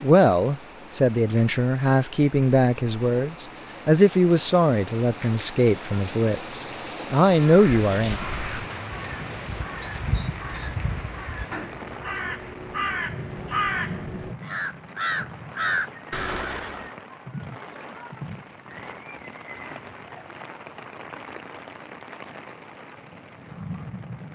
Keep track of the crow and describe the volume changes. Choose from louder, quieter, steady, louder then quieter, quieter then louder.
louder.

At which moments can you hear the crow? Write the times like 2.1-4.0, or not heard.
7.5-16.9.